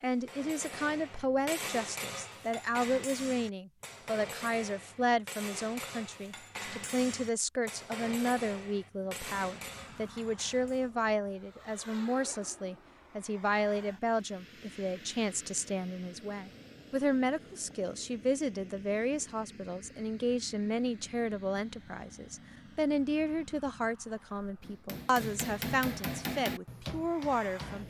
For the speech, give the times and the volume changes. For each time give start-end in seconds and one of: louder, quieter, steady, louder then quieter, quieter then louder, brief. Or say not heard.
0.0-27.8 steady.